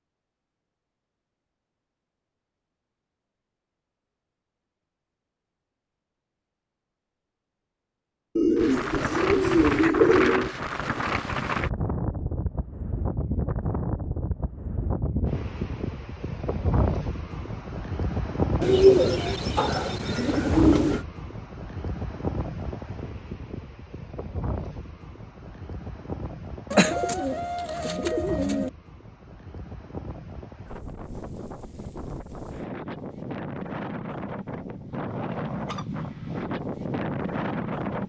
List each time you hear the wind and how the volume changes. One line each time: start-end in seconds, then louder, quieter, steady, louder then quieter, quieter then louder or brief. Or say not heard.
8.6-38.0 quieter then louder.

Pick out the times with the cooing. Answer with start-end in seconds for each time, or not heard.
8.3-10.5, 18.6-21.1, 26.7-28.7.